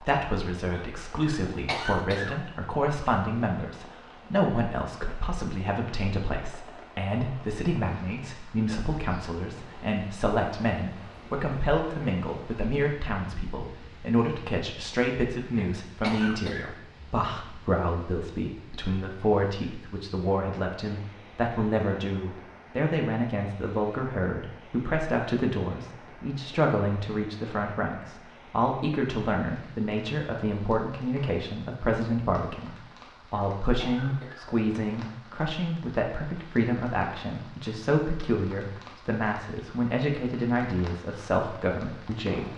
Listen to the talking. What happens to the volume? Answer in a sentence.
The volume of the talking stays about the same.